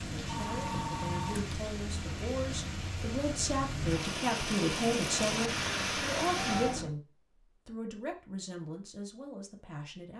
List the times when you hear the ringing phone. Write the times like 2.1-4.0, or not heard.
0.2-1.6, 6.3-7.0.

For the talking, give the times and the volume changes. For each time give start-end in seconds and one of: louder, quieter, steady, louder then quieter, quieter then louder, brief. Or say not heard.
0.0-10.1 louder then quieter.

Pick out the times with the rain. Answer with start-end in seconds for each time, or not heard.
0.0-6.8.